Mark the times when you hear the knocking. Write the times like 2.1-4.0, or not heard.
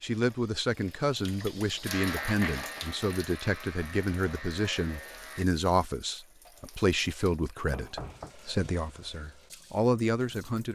7.7-8.3.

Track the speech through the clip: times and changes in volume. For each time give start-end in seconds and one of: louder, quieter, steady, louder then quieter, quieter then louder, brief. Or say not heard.
0.0-10.7 steady.